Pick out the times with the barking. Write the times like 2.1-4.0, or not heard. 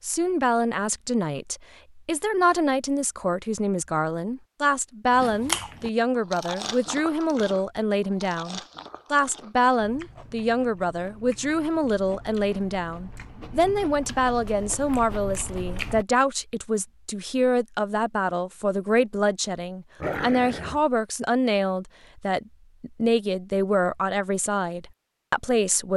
20.0-20.9.